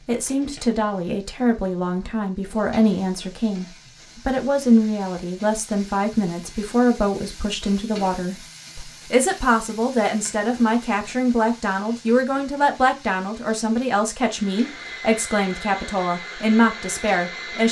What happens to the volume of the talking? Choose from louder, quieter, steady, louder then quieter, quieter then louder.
steady.